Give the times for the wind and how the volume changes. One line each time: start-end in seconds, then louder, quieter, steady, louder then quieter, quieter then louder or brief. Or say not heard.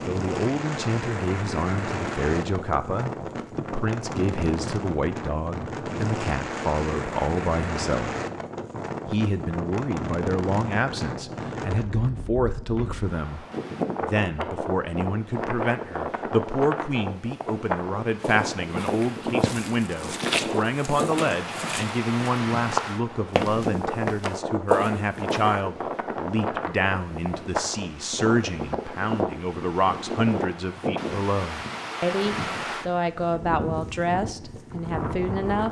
0.0-35.6 steady.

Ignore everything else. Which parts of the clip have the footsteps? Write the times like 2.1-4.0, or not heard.
18.2-25.6.